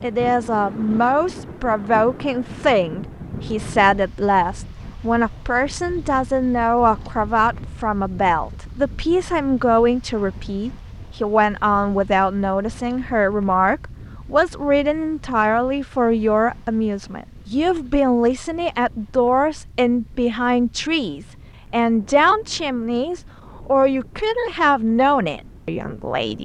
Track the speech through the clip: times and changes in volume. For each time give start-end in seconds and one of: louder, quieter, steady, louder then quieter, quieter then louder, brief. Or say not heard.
0.0-26.3 steady.